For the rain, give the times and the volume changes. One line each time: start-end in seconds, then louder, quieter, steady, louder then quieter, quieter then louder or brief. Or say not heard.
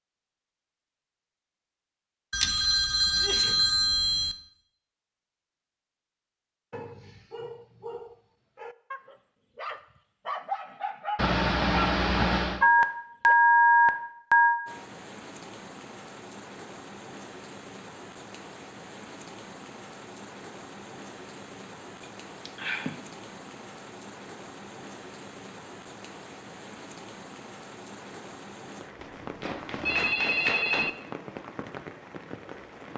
14.7-32.9 steady.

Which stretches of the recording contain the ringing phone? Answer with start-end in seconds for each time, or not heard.
2.3-4.3, 12.6-14.6, 29.0-30.9.